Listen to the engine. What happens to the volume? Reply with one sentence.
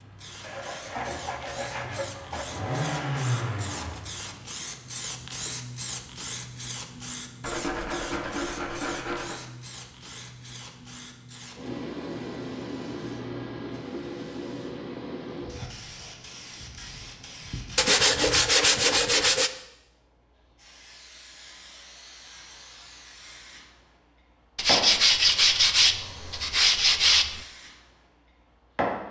The loudness of the engine goes up, then down.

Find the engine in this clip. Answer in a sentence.
The engine can be heard from 0.0 to 4.5 s.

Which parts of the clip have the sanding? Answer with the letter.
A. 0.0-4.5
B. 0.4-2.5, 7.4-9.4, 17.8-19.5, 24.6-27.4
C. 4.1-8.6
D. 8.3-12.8
B.